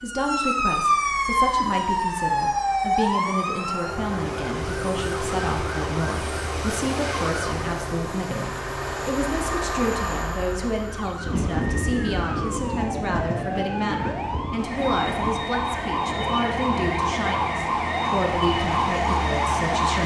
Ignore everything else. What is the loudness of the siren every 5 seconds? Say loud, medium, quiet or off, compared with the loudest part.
loud, medium, medium, loud.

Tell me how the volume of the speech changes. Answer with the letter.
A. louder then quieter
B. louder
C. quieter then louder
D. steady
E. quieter
D.